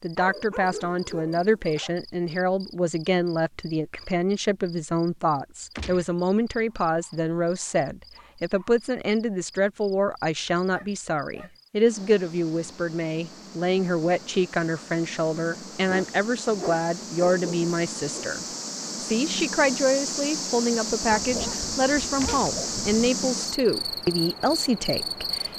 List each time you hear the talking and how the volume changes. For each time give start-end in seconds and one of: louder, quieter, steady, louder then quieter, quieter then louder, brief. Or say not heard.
0.0-25.5 steady.